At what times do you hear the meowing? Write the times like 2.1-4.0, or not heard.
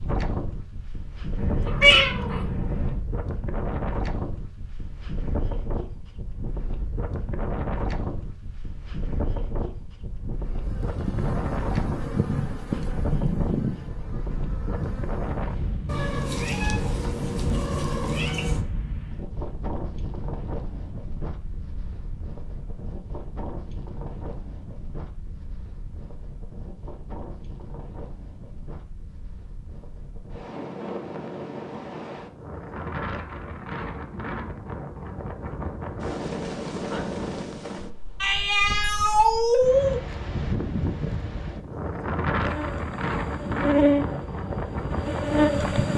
1.4-3.0, 15.8-18.6, 38.2-40.0.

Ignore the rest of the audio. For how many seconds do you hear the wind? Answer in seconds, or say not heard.
46 s.